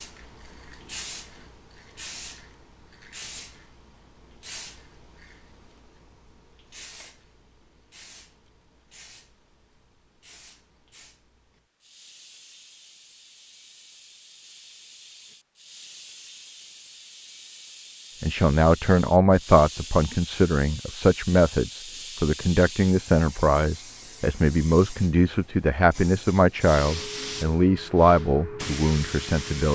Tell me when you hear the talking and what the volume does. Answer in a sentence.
You can hear the talking from 18.2 to 29.7 s, at a steady volume.